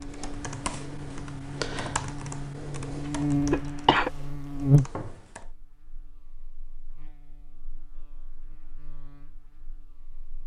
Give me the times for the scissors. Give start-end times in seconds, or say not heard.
not heard.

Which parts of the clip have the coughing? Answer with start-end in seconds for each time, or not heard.
3.5-4.1.